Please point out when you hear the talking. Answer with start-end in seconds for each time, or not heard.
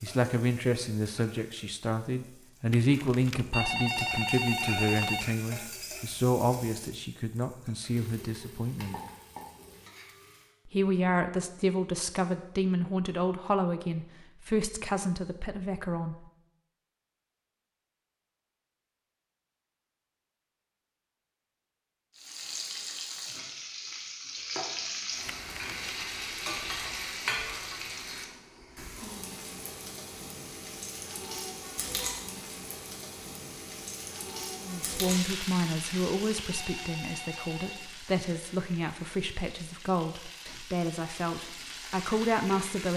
0.0-9.0, 10.7-16.2, 34.6-42.9.